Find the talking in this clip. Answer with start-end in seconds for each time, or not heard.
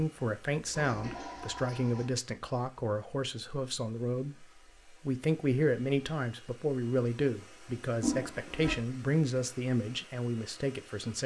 0.0-11.2.